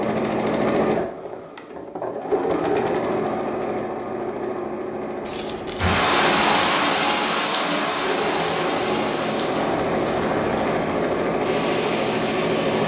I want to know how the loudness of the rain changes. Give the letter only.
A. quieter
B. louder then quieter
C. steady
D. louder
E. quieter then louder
A.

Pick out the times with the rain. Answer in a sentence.
You can hear the rain from 5.8 to 12.8 s.